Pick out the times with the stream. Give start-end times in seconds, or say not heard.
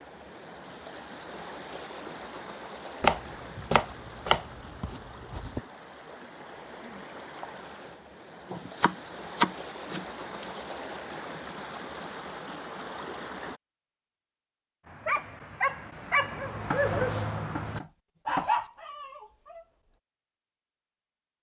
0.0-13.6.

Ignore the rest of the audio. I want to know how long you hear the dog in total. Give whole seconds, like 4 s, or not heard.
5 s.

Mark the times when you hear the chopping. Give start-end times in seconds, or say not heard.
3.0-5.6, 8.5-10.5, 16.7-18.7.